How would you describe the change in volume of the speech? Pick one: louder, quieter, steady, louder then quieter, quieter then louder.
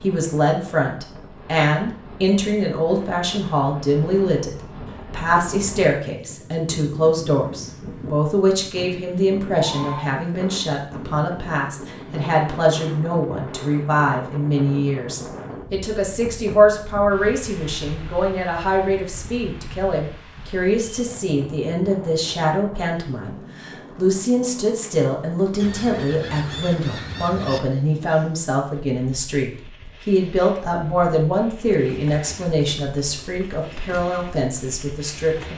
steady.